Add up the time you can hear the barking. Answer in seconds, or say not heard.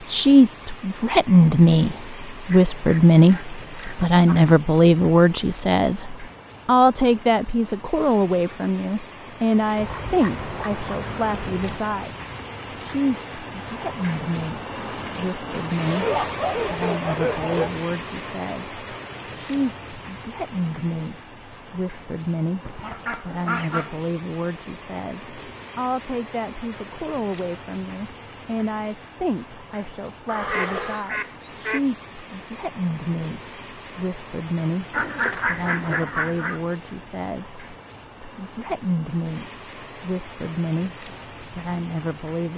2 s.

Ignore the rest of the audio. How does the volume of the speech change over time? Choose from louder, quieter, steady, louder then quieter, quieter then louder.
quieter.